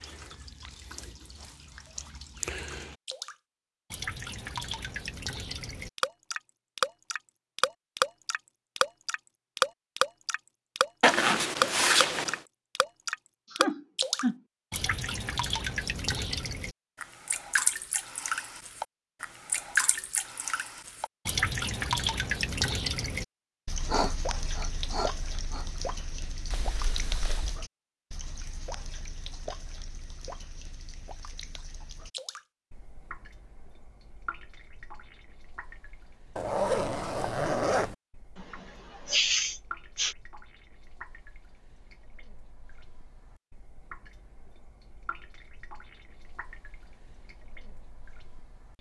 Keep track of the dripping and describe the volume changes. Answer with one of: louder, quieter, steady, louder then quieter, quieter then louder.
quieter.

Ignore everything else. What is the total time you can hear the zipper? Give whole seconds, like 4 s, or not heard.
4 s.